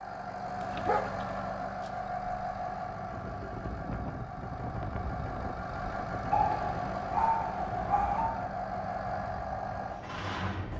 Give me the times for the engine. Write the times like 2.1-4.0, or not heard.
0.0-10.7.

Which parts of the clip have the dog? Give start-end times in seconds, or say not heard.
0.5-1.9, 6.3-8.3.